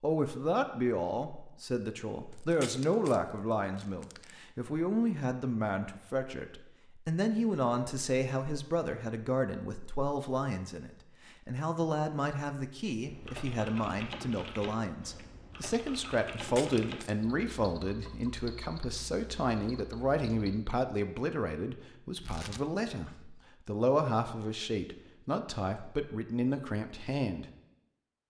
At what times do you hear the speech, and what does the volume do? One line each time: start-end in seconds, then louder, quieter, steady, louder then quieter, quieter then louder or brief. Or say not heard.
0.0-27.4 steady.